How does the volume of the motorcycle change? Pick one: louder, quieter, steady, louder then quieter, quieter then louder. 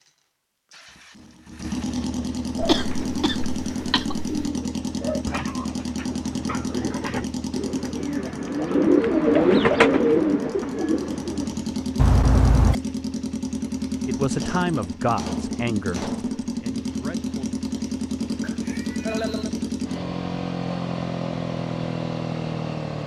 steady.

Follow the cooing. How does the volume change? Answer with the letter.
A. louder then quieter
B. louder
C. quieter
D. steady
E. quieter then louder
B.